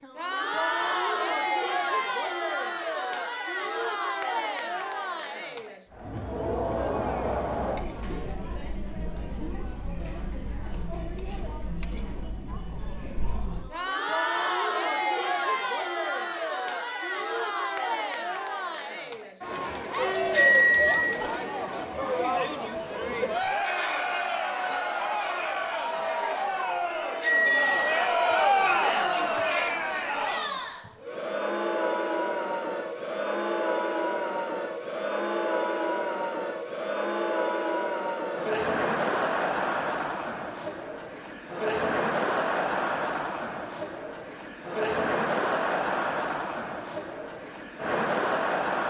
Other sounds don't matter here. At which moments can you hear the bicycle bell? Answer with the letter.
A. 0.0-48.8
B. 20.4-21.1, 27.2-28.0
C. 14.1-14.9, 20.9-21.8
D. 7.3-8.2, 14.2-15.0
B.